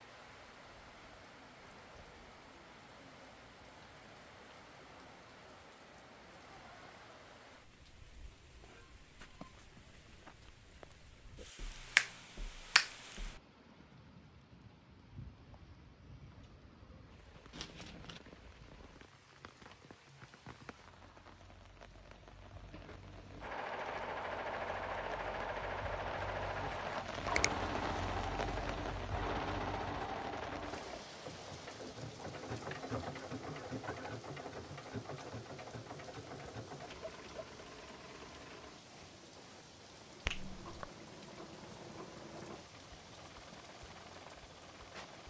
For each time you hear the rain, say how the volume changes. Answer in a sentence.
The rain can be heard from 0.0 to 45.2 s, getting louder then quieter.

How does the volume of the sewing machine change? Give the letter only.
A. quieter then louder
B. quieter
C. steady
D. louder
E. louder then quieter
B.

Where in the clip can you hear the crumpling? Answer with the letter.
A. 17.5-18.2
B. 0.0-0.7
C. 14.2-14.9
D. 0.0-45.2
A.